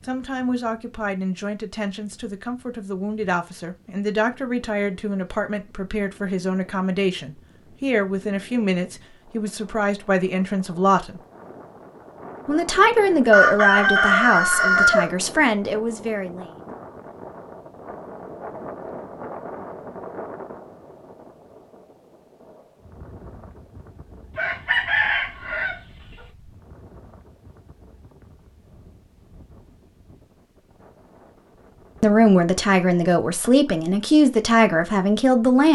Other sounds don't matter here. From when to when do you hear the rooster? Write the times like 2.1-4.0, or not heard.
13.3-15.1, 24.4-25.8.